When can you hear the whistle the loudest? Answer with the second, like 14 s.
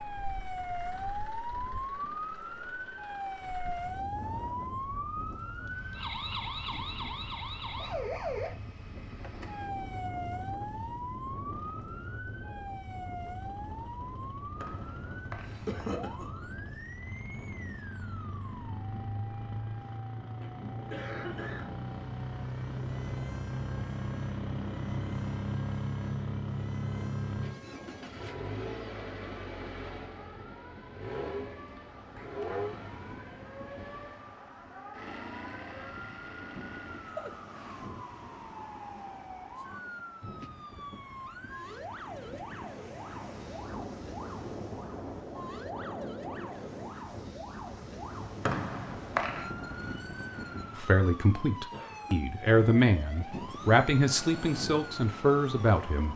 49 s.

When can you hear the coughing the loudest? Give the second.
16 s.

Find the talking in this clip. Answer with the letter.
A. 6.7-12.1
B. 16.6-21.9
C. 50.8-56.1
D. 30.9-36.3
C.